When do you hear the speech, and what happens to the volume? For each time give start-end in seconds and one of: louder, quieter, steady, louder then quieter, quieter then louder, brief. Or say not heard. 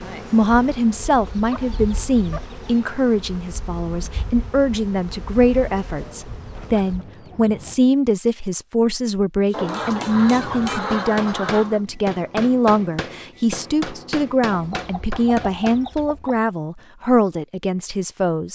0.3-18.5 steady.